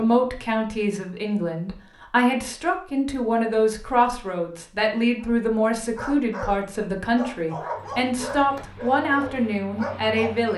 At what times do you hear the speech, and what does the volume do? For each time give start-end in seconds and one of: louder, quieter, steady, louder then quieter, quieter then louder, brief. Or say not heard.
0.0-10.5 steady.